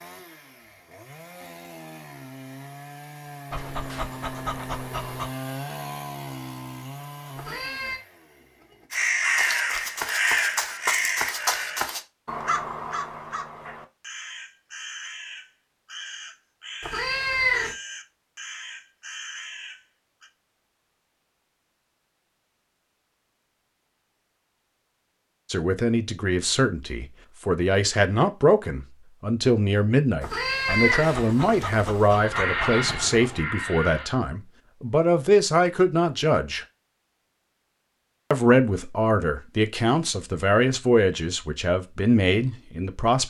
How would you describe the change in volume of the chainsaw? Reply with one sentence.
The volume of the chainsaw goes up, then down.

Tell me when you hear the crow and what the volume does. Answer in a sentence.
The crow can be heard from 8.9 to 20.3 s, getting quieter; and briefly from 32.1 to 34.1 s.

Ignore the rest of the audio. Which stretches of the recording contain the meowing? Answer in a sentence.
You can hear the meowing from 7.3 to 8.0 s, from 16.8 to 17.8 s and from 30.2 to 32.2 s.